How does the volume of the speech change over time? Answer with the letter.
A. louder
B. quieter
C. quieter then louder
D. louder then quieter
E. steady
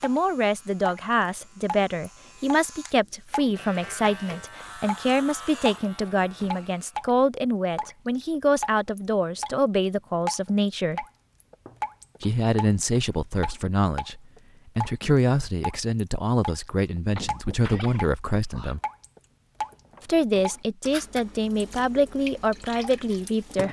E.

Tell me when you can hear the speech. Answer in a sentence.
You can hear the speech from 0.0 to 11.1 s, from 12.2 to 18.8 s and from 20.1 to 23.6 s.